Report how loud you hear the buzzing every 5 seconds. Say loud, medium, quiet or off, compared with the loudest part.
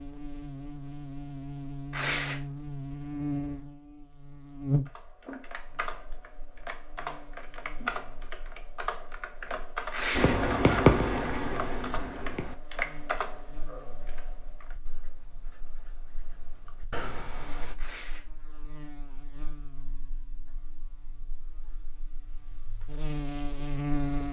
loud, quiet, quiet, quiet, loud.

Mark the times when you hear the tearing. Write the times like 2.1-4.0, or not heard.
1.9-2.4, 9.9-10.3, 17.8-18.2.